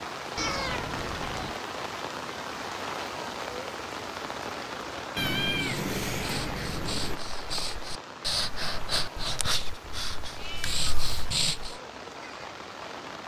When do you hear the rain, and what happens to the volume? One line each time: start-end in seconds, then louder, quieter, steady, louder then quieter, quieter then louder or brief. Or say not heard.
0.0-13.2 quieter.